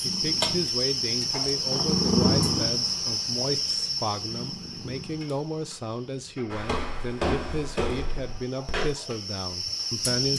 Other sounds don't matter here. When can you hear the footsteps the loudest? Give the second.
7 s.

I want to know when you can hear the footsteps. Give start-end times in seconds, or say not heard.
6.5-8.9.